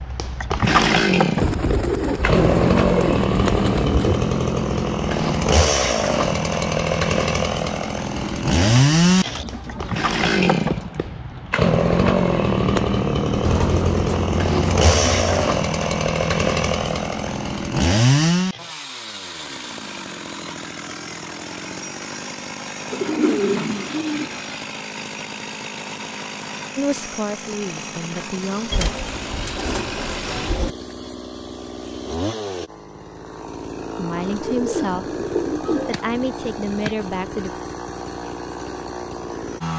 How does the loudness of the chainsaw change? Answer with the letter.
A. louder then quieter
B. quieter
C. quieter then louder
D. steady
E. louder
B.